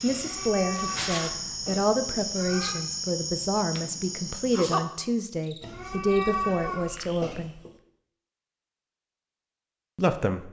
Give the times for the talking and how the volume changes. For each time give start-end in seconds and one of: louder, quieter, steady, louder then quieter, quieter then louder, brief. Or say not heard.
0.0-7.5 steady
9.9-10.4 brief.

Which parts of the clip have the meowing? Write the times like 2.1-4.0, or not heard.
0.1-2.8, 5.6-7.7.